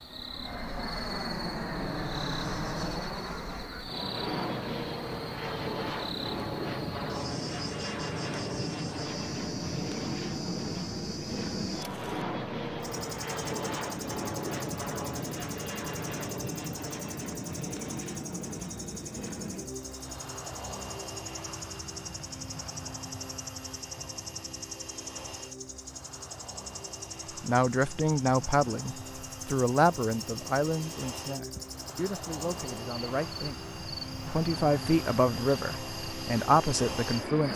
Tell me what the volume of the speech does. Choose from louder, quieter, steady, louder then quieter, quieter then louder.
quieter then louder.